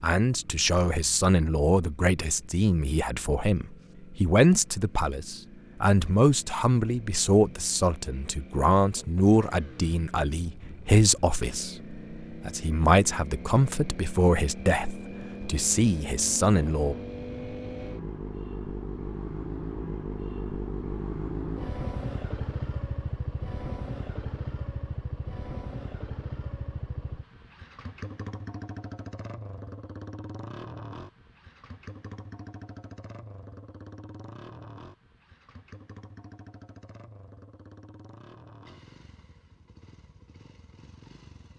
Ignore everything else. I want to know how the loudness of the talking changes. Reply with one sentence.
The volume of the talking stays about the same.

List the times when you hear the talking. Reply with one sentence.
The talking can be heard from 0.0 to 16.9 s.